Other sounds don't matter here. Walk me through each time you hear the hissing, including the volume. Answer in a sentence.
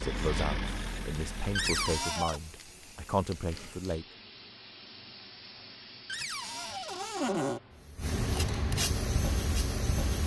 The hissing can be heard from 0.0 to 10.2 s, getting louder.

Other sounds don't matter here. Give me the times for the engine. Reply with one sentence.
The engine can be heard from 0.0 to 2.0 s.